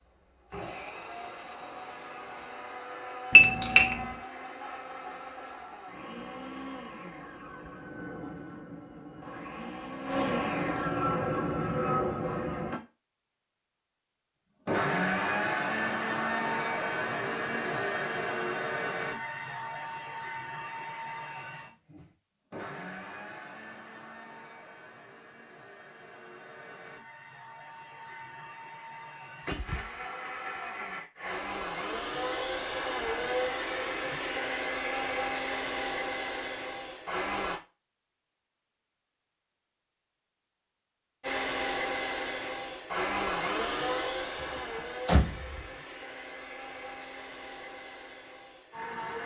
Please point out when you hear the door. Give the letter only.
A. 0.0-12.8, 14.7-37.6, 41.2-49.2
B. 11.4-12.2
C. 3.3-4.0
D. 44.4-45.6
D.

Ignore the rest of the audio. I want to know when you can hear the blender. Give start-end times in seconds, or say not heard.
0.0-12.8, 14.7-37.6, 41.2-49.2.